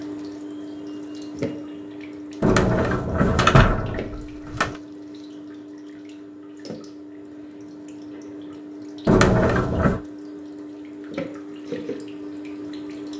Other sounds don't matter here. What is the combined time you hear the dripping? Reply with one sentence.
The dripping can be heard for 13 seconds in total.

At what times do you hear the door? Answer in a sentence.
You can hear the door from 2.4 to 4.8 s and from 9.1 to 10.0 s.